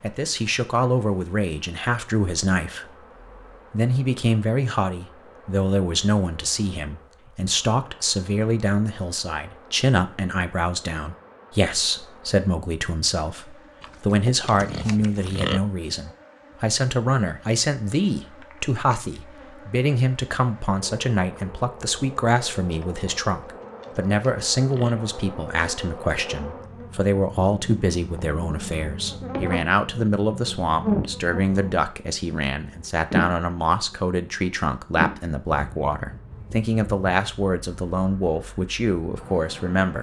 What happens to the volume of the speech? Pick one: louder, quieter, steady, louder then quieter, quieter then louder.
steady.